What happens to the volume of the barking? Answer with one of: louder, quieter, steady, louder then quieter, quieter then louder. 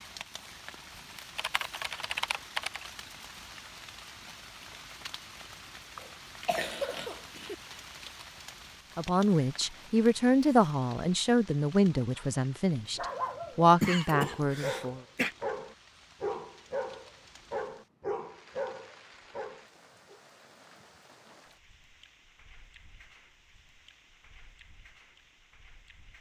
steady.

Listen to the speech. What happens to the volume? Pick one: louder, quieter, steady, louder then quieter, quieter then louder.
quieter then louder.